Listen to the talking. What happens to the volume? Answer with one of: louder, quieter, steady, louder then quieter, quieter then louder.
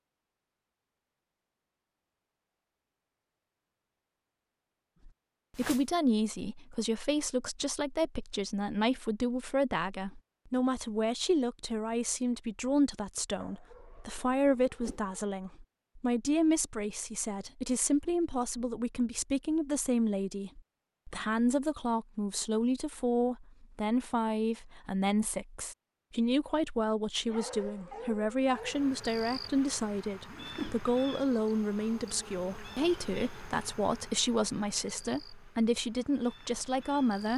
steady.